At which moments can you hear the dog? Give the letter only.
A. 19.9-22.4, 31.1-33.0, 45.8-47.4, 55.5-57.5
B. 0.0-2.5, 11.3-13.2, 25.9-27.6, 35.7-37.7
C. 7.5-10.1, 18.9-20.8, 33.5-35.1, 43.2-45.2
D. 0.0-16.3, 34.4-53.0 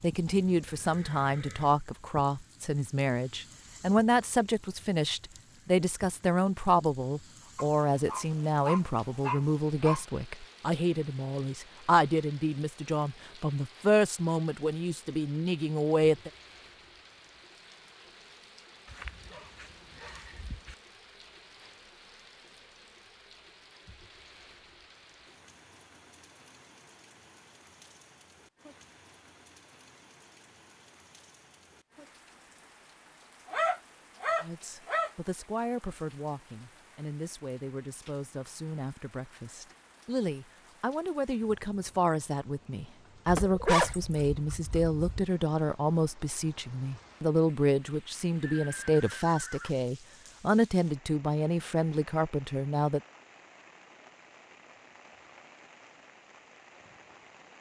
C.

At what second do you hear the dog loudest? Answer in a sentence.
The loudest moment of the dog is at 44 seconds.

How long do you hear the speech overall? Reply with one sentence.
The speech can be heard for 35 seconds in total.